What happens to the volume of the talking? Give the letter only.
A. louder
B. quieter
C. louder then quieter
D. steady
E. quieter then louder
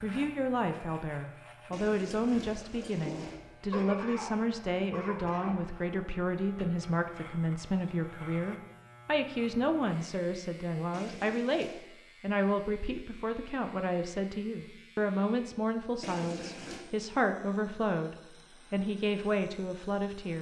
D.